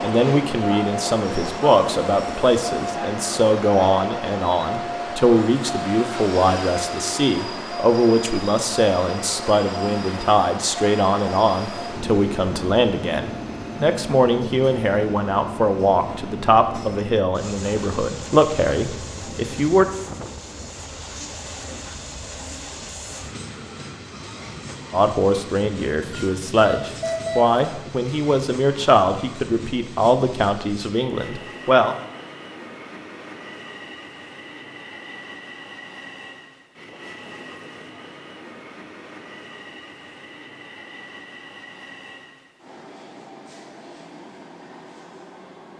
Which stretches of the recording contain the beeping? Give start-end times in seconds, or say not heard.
26.0-27.6.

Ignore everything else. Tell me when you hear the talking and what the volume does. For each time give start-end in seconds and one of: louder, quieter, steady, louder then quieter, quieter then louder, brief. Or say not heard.
0.0-19.9 steady
24.9-31.9 louder then quieter.